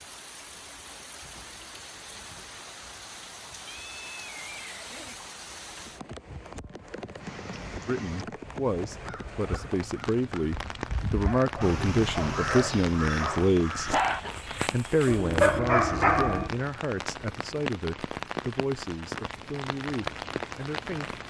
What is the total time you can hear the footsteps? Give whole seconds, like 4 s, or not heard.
not heard.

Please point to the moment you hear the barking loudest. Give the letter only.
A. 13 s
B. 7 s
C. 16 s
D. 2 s
C.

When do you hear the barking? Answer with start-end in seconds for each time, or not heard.
11.2-16.5.